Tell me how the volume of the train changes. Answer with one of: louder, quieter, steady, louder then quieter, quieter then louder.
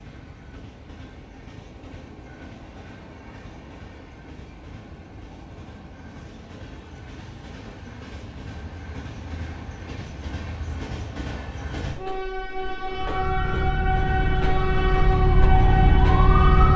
louder.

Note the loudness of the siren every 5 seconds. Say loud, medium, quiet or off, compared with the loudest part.
off, off, medium, loud.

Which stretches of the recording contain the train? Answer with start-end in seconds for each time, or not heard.
0.0-16.7.